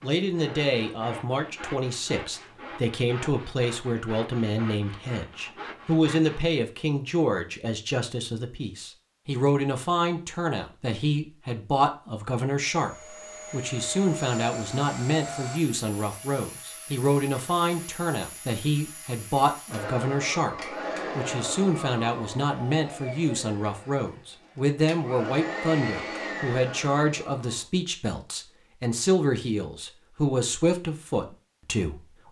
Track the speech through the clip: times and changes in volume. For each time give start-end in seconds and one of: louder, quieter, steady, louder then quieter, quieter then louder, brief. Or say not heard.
0.0-32.2 steady.